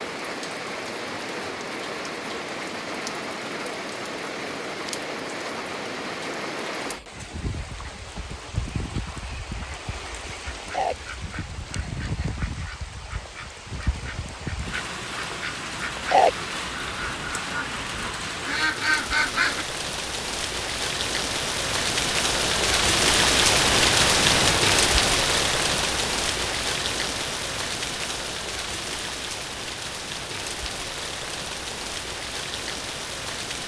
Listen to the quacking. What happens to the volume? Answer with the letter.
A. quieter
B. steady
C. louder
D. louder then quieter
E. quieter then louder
C.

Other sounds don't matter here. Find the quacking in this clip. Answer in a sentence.
The quacking can be heard from 10.5 to 19.6 s.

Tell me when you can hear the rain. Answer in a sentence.
The rain can be heard from 0.0 to 33.6 s.